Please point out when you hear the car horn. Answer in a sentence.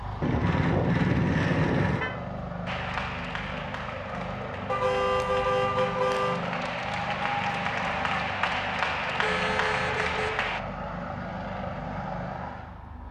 You can hear the car horn from 0.2 to 2.1 s, from 4.7 to 6.4 s and from 9.2 to 10.3 s.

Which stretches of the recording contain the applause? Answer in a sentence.
The applause can be heard from 2.6 to 10.6 s.